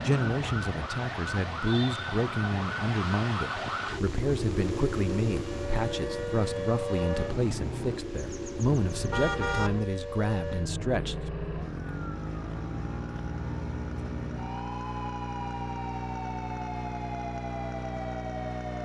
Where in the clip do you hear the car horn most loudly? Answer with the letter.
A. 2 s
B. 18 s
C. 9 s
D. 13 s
C.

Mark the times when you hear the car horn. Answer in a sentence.
The car horn can be heard from 8.1 to 9.7 s.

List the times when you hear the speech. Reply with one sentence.
The speech can be heard from 0.0 to 11.3 s.